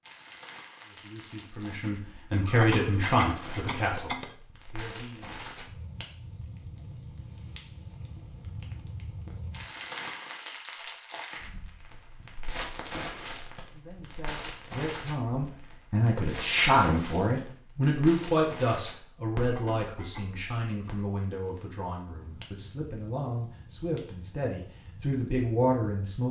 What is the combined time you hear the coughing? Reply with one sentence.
You can hear the coughing for 3 seconds altogether.